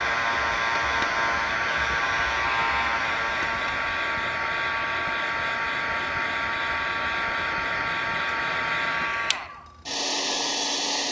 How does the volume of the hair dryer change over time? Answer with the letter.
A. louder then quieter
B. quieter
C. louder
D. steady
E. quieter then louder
D.